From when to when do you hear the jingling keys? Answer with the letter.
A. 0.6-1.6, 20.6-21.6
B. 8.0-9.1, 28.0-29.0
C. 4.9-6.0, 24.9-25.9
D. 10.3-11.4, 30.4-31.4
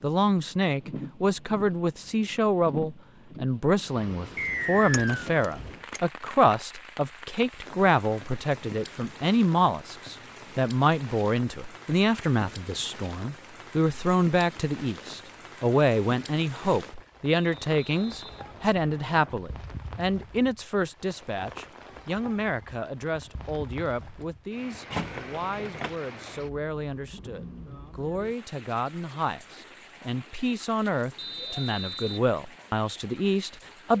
C.